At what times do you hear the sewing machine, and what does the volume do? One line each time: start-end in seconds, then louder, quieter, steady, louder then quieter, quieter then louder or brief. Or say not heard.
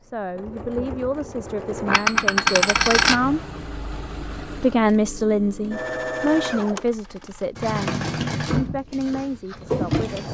0.0-10.2 louder.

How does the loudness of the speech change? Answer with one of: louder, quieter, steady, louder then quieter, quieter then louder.
louder then quieter.